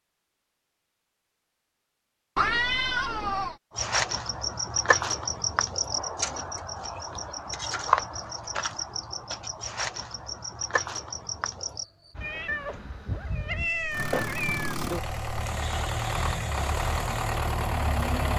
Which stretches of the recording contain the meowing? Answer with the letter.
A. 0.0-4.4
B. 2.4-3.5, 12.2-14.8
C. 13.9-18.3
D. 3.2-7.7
B.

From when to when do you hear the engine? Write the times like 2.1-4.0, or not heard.
13.9-18.3.